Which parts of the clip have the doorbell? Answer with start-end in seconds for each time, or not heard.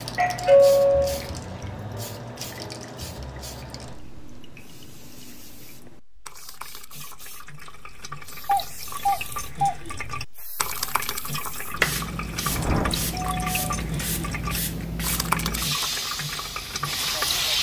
0.1-1.2, 8.4-9.8, 12.4-13.8.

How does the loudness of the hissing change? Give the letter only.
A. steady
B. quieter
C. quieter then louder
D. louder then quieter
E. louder
C.